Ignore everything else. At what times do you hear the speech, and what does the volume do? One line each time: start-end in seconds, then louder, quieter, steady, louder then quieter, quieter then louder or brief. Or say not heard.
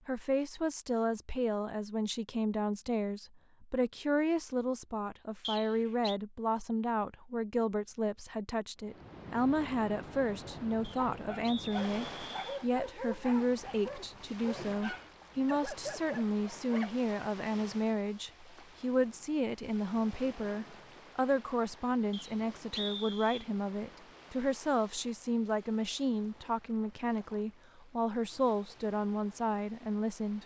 0.1-30.4 steady.